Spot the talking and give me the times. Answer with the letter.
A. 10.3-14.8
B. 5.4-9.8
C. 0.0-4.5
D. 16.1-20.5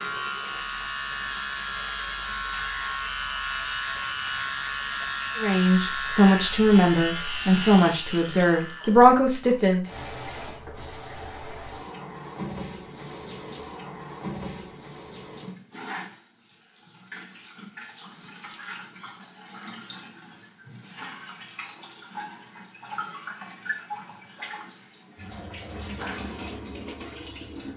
B.